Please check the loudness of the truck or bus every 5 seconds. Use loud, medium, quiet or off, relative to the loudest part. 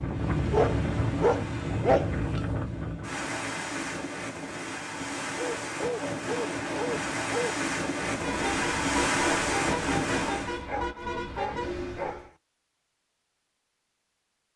off, loud, loud.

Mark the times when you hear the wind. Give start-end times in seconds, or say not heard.
0.0-10.7.